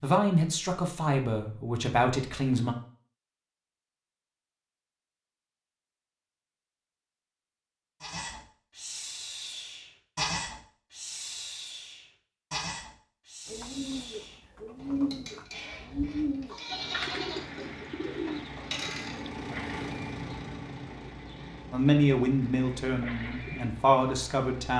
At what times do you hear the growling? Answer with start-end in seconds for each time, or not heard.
not heard.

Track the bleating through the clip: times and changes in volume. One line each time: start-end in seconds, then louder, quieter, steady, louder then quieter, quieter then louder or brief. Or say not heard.
8.0-19.2 quieter then louder.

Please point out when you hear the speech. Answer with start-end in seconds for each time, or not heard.
0.0-2.8, 21.7-24.7.